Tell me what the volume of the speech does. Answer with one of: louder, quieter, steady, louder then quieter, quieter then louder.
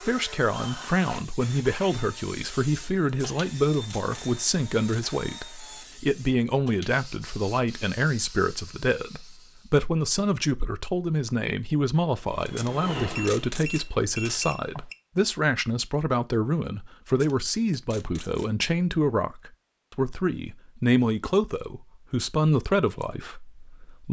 steady.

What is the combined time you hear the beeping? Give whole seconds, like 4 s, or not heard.
2 s.